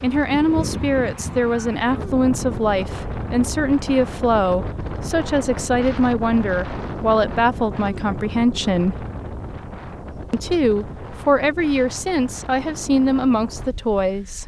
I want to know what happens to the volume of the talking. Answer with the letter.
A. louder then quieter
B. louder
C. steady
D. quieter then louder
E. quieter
C.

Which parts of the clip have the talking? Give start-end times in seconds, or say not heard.
0.0-9.0, 10.3-14.4.